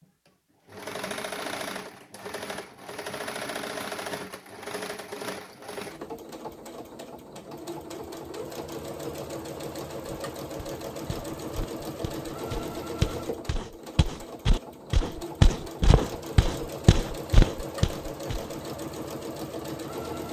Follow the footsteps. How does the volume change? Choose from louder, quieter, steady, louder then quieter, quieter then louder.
louder.